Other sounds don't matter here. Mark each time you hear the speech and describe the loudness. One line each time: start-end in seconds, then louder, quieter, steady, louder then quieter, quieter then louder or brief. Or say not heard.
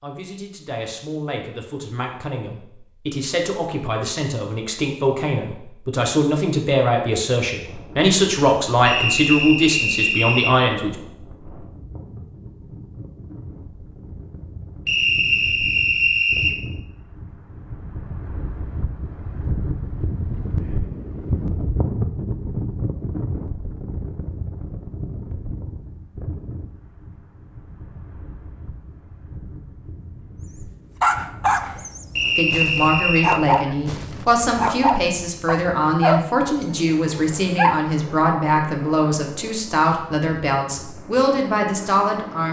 0.0-10.9 louder
32.4-42.4 steady.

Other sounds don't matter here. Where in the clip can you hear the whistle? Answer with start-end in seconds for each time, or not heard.
8.8-10.6, 14.8-16.6, 32.1-33.4.